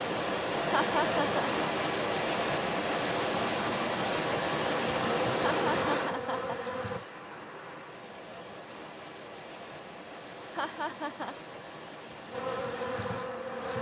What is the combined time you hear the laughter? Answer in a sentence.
The laughter can be heard for 4 seconds in total.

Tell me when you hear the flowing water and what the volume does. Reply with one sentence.
You can hear the flowing water from 0.0 to 13.7 s, getting quieter.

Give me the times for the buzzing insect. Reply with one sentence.
You can hear the buzzing insect from 4.6 to 7.0 s and from 12.3 to 13.7 s.